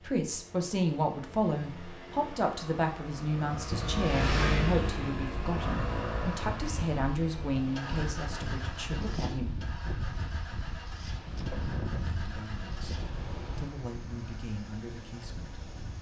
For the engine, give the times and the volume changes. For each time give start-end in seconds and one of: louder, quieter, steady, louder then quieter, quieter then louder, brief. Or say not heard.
0.0-15.9 louder then quieter.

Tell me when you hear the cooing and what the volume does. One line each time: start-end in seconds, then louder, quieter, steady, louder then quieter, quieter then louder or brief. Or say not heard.
not heard.